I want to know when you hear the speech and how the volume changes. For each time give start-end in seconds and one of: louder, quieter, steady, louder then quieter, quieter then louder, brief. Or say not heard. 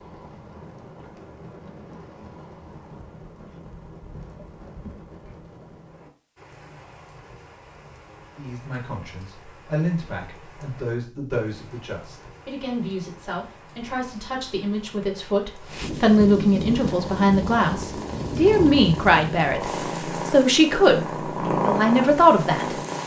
8.3-19.6 louder
20.2-22.8 brief.